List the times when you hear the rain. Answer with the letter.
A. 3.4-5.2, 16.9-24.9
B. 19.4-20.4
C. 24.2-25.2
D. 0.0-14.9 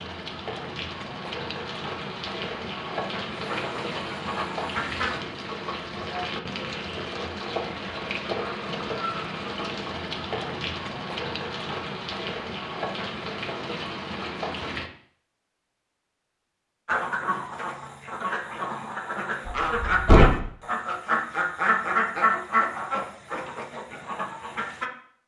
D.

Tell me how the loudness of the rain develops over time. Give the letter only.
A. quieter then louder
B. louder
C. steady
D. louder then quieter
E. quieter
C.